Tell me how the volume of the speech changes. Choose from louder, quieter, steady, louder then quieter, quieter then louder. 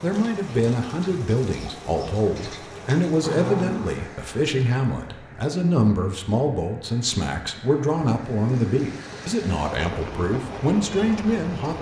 steady.